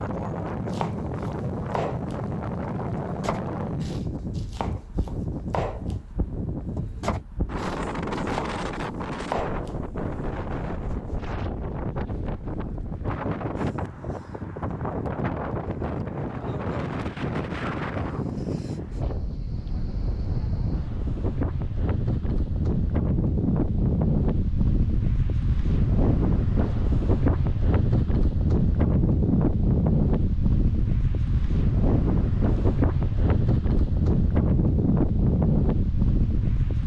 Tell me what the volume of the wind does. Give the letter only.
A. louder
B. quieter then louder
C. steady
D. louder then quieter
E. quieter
A.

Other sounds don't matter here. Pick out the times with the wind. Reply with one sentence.
The wind can be heard from 0.0 to 36.8 s.